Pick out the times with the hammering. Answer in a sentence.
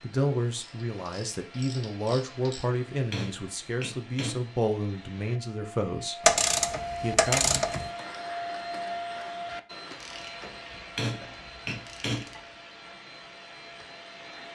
You can hear the hammering from 2.9 to 4.5 s and from 10.8 to 12.3 s.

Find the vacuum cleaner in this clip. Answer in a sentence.
You can hear the vacuum cleaner from 0.0 to 14.5 s.